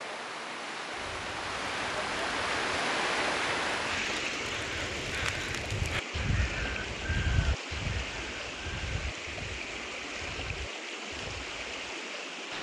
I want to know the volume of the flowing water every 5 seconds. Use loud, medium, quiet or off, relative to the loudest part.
loud, medium, medium.